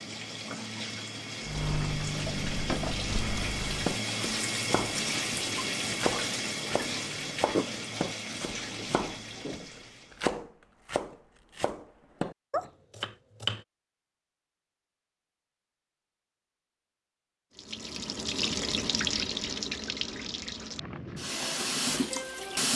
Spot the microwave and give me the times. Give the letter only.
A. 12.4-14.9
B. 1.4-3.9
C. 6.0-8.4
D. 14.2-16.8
B.